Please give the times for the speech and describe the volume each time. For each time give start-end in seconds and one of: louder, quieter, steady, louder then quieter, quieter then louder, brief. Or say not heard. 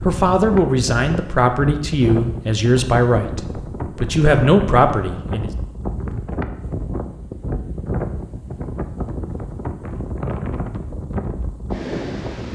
0.1-5.5 quieter then louder.